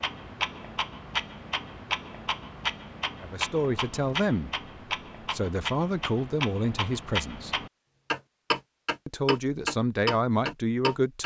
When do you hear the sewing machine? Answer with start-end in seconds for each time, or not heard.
not heard.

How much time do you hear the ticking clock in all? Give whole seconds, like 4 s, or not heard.
11 s.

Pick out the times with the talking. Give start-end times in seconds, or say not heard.
3.2-7.7, 9.1-11.2.